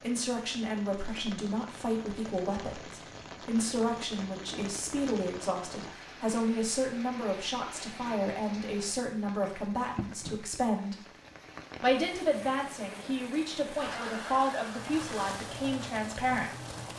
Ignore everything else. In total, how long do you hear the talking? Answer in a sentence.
You can hear the talking for 16 seconds altogether.